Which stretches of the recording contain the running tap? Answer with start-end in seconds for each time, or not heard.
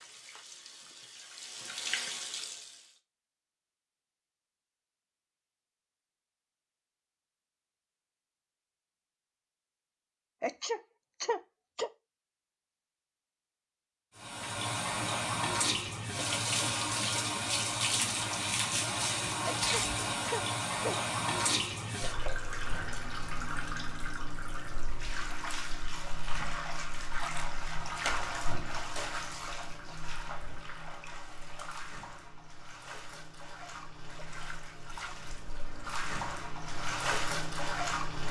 0.0-3.0, 14.2-38.2.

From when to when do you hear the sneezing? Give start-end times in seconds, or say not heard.
10.4-11.9, 19.4-20.9.